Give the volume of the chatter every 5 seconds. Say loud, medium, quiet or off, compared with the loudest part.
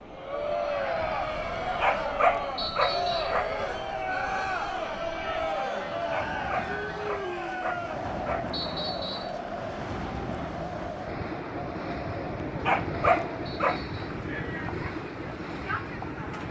loud, loud, medium, medium.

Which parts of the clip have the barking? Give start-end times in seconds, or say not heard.
1.8-3.5, 6.1-8.5, 12.6-13.8.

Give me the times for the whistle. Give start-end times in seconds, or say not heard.
2.5-3.4, 8.5-9.3, 13.4-14.1.